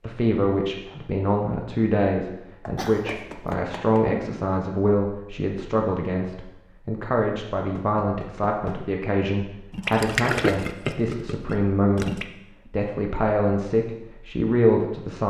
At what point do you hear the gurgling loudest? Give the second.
10 s.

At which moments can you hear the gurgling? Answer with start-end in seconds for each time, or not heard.
9.7-12.2.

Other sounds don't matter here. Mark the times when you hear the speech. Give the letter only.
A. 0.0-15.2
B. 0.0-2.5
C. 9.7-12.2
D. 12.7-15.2
A.